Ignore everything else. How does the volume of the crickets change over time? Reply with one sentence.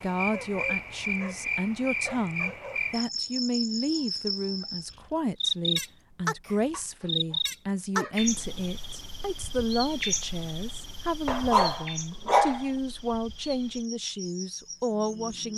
The loudness of the crickets goes down.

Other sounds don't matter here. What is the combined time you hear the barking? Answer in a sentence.
You can hear the barking for 5 seconds altogether.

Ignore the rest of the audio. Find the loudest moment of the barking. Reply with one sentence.
The volume of the barking peaks at 12 seconds.